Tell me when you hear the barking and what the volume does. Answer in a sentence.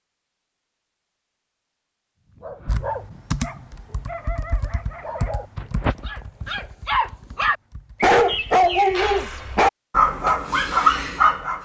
The barking can be heard from 2.3 to 11.6 s, getting louder.